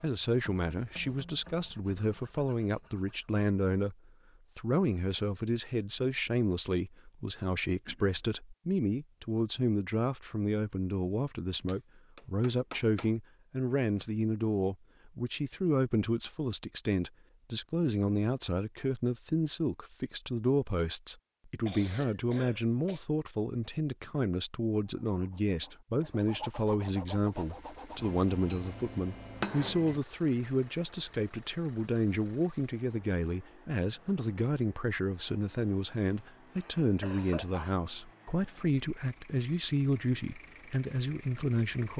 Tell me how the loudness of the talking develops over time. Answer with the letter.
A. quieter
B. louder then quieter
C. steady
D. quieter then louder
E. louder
C.